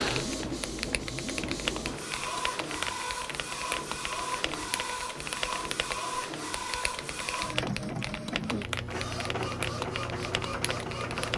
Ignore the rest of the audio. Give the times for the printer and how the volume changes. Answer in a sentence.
You can hear the printer from 0.0 to 11.3 s, at a steady volume.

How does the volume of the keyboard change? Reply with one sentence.
The loudness of the keyboard stays about the same.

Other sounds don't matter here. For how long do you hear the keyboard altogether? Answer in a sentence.
The keyboard can be heard for 11 seconds in total.